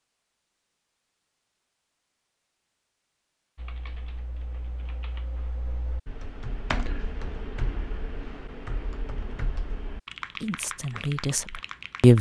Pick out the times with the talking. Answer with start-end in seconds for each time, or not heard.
10.4-12.1.